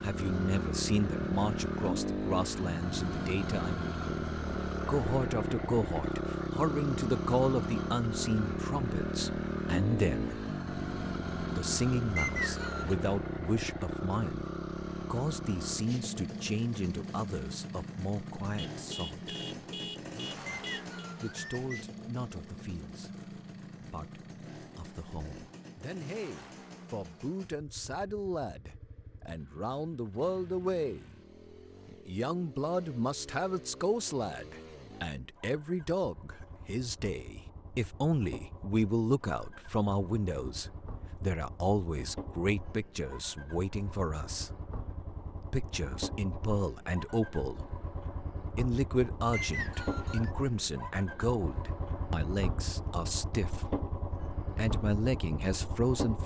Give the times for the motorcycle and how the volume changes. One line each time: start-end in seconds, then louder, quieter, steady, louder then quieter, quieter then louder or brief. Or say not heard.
0.0-56.2 quieter then louder.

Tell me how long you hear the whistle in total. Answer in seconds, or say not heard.
3 s.